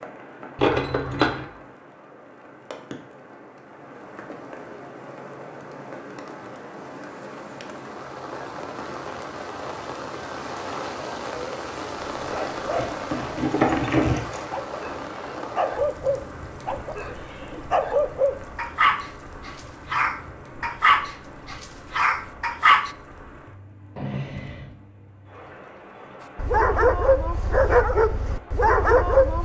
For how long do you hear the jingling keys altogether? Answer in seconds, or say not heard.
3 s.